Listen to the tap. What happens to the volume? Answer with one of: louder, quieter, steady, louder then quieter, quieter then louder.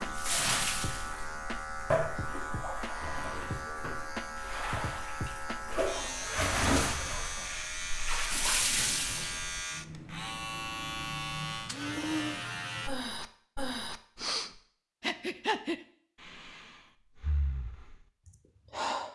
quieter then louder.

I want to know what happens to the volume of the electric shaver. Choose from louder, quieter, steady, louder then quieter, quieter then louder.
steady.